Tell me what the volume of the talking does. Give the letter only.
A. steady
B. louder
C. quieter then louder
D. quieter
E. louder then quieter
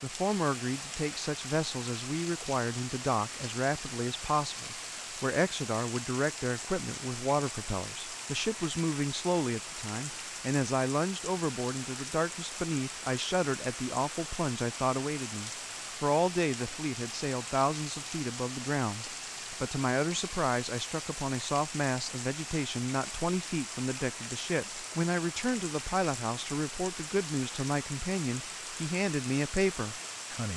A.